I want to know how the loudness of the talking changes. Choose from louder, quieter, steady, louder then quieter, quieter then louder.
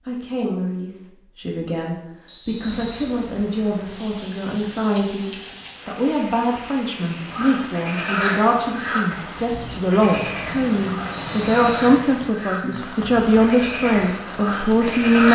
louder.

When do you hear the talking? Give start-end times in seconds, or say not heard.
0.1-15.3.